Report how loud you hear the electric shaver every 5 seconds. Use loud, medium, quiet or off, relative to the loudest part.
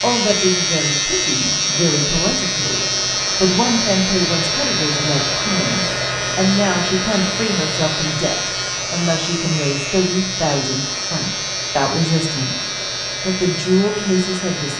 loud, loud, medium.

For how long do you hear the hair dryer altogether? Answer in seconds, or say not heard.
15 s.